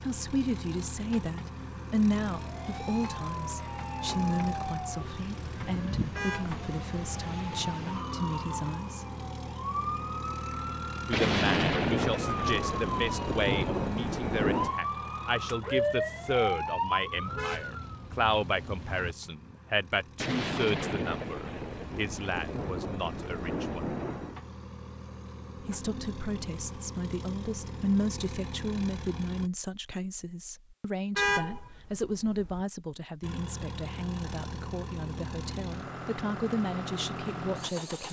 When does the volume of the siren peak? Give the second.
16 s.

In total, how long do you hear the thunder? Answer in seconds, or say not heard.
8 s.